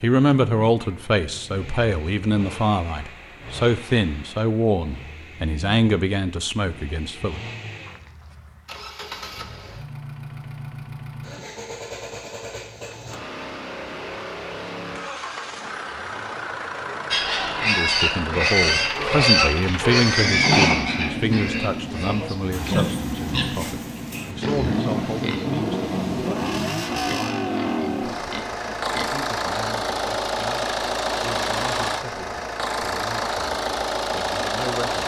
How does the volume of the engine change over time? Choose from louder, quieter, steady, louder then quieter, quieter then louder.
louder.